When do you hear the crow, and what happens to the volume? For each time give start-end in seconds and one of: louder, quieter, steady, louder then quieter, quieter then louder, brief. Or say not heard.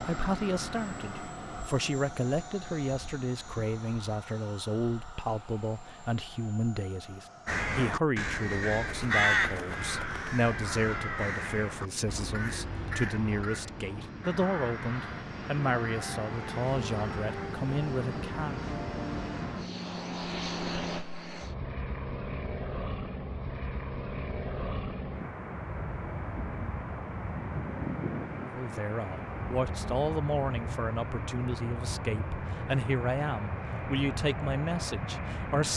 7.5-17.6 quieter.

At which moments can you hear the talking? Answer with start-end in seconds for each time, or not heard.
0.0-18.6, 28.5-35.7.